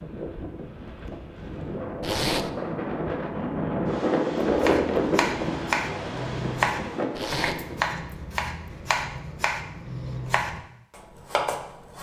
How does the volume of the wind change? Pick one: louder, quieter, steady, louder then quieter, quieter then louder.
louder then quieter.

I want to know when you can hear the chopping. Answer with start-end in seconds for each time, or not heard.
4.5-11.9.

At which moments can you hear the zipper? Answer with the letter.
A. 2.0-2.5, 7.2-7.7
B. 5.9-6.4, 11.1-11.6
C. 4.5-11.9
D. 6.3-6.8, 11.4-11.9
A.